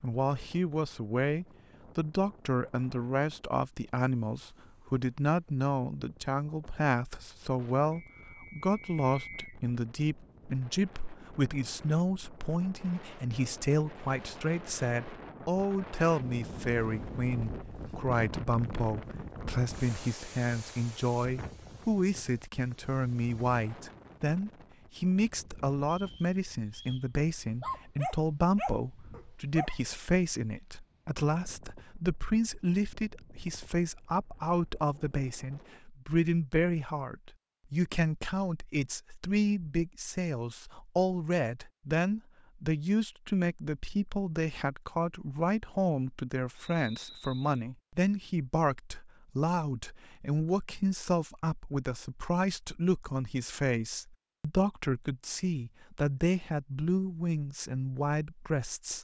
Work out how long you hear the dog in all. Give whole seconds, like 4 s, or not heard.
2 s.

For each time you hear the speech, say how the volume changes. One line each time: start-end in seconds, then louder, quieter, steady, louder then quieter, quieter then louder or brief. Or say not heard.
0.0-58.9 steady.